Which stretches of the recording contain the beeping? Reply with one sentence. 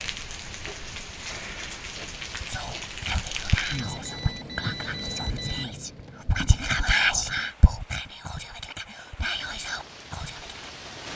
The beeping can be heard from 3.6 to 5.7 s.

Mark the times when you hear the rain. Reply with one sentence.
The rain can be heard from 0.0 to 11.1 s.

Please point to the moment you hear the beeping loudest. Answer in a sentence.
The loudest moment of the beeping is at 5 seconds.